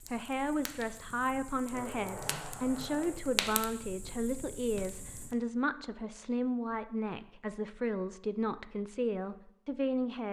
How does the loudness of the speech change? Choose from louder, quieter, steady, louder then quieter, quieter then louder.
steady.